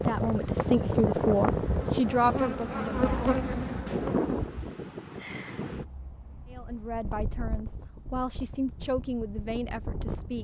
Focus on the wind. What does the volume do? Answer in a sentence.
The loudness of the wind goes down.